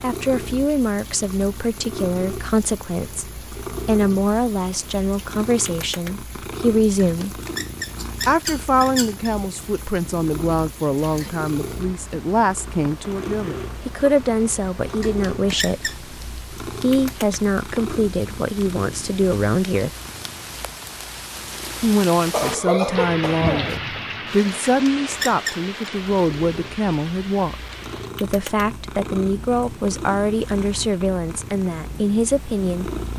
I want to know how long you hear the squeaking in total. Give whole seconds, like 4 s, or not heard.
4 s.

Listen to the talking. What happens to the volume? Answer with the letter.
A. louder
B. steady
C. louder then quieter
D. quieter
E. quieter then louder
B.